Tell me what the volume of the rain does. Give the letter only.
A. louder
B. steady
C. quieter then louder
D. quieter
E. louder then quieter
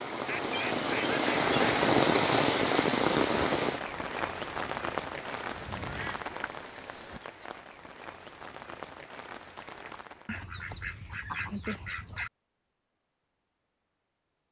D.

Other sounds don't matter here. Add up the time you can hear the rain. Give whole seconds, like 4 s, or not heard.
10 s.